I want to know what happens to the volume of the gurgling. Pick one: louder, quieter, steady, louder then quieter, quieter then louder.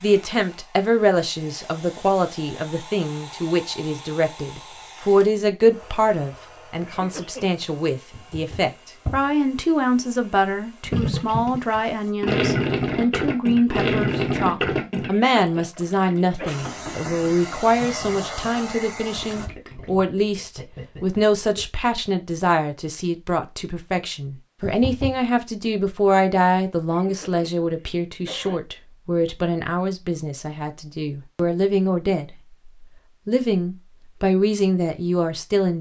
quieter.